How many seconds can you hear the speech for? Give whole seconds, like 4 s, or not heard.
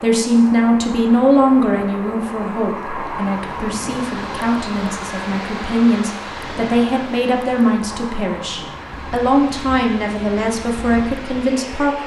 12 s.